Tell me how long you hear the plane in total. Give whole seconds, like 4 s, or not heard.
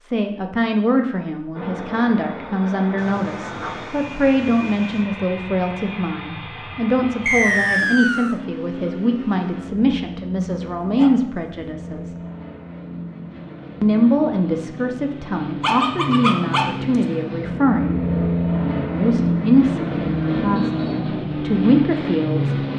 21 s.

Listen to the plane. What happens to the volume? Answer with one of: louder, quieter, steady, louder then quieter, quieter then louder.
louder.